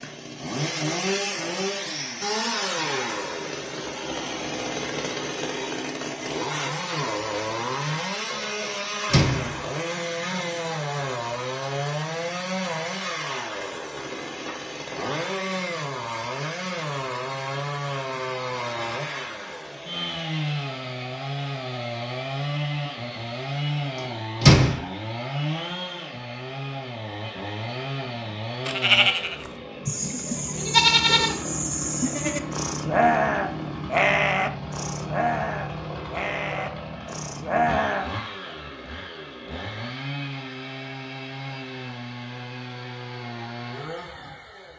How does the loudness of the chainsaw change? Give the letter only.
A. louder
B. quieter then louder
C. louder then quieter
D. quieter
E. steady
D.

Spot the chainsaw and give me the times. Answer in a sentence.
You can hear the chainsaw from 0.0 to 44.7 s.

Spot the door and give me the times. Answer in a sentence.
You can hear the door from 9.1 to 9.6 s and from 24.4 to 24.8 s.